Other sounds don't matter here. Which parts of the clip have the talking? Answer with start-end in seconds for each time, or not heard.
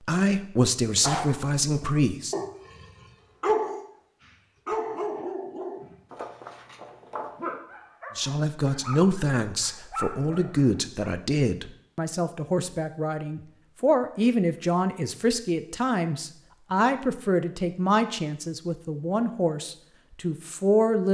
0.0-2.4, 8.2-21.1.